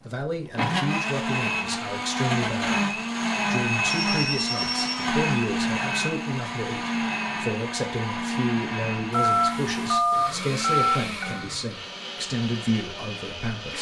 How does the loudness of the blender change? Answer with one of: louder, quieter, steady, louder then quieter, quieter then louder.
quieter.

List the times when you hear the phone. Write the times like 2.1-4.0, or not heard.
3.9-5.0, 9.1-11.4.